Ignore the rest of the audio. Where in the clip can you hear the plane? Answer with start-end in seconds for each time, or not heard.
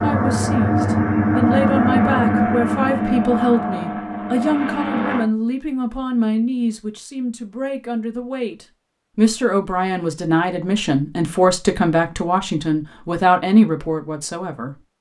0.0-5.2.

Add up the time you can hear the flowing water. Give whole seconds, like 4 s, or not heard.
not heard.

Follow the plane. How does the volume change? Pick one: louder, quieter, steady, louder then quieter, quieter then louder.
quieter.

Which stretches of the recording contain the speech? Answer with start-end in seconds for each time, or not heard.
0.0-14.8.